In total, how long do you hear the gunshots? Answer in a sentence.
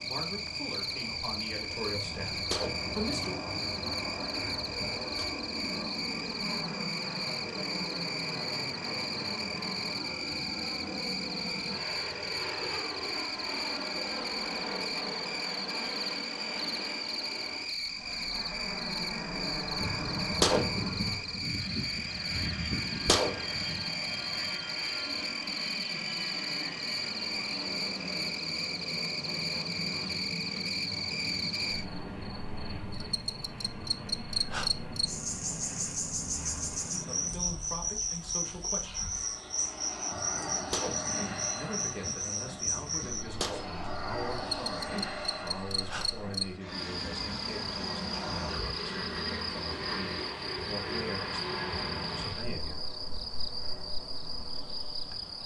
The gunshots can be heard for 11 seconds in total.